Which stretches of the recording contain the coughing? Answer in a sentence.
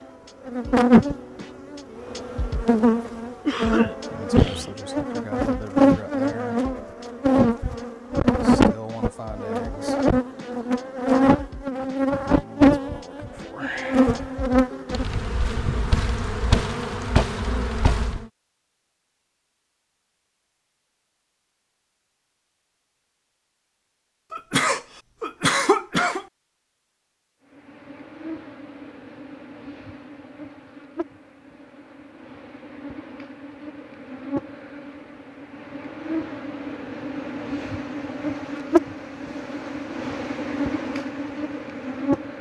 The coughing can be heard from 3.5 to 4.7 s and from 24.3 to 26.2 s.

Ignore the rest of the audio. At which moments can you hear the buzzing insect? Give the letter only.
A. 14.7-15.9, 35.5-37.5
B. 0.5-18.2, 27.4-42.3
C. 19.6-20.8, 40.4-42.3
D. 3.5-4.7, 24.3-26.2
B.